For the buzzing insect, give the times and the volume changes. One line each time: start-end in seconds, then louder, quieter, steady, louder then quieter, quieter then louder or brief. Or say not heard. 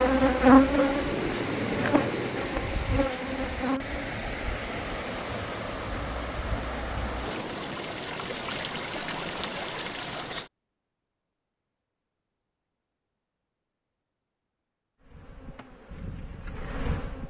0.0-4.2 quieter
15.0-17.2 brief.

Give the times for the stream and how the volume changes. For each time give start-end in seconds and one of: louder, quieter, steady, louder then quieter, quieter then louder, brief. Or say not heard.
0.0-10.5 steady.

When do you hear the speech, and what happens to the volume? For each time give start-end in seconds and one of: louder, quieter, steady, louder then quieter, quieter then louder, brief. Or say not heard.
not heard.